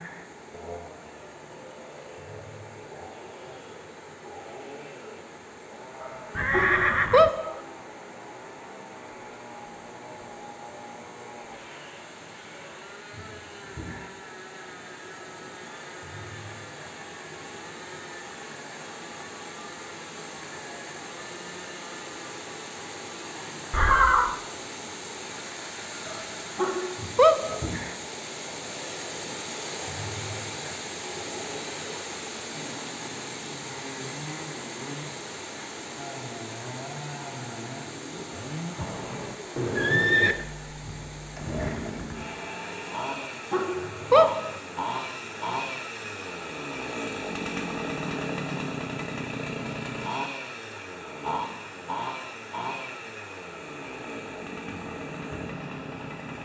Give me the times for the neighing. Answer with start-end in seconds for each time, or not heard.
6.3-7.3, 23.7-24.4, 38.8-40.4.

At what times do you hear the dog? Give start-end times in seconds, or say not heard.
6.0-7.6, 26.1-27.6, 43.0-44.5.